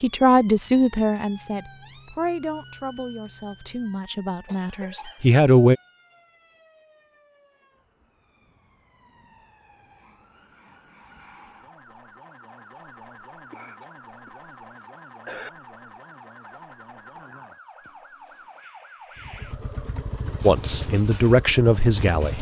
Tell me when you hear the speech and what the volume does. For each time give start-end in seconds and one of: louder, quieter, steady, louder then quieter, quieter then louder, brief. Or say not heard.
0.0-5.8 quieter then louder
20.4-22.3 brief.